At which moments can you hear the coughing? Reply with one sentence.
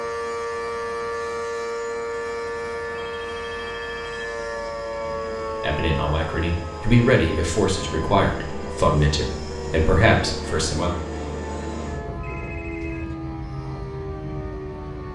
You can't hear the coughing here.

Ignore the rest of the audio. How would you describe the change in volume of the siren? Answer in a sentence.
The loudness of the siren goes down.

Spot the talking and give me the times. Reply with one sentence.
The talking can be heard from 5.6 to 11.0 s.